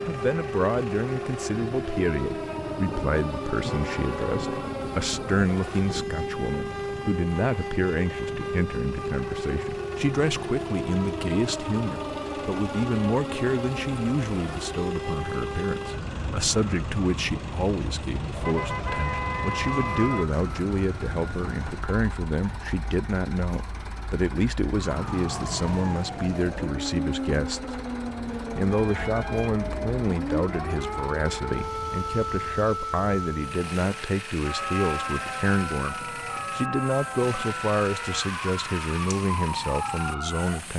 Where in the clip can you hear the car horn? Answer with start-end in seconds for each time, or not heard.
3.6-4.7, 18.3-20.2, 28.7-30.1.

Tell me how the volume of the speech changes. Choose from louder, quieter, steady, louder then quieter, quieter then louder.
steady.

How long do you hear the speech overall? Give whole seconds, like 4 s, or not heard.
40 s.